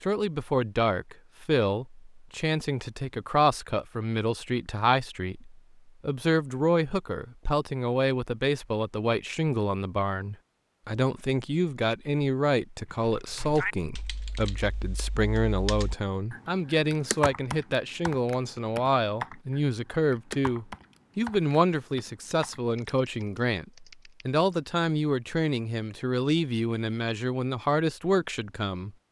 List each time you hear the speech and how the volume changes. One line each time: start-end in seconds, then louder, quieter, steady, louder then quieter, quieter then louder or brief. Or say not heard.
0.0-28.9 steady.